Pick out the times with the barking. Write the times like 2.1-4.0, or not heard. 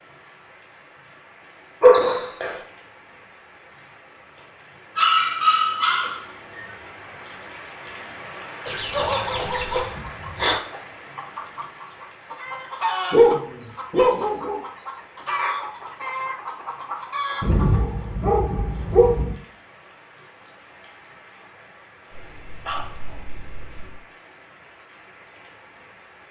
1.8-2.6, 5.0-6.7, 8.9-10.6, 13.1-14.6, 17.4-19.4, 22.1-24.0.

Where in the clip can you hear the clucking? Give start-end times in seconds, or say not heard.
8.7-17.8.